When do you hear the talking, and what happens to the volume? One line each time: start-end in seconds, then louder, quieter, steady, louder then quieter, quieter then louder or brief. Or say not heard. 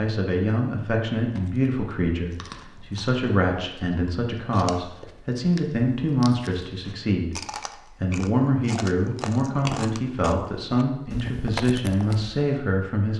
0.0-13.1 steady.